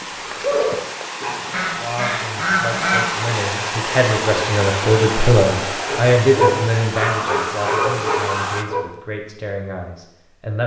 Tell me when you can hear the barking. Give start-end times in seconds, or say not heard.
0.0-1.6, 5.8-8.8.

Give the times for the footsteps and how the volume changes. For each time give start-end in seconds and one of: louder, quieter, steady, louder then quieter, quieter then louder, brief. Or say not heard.
not heard.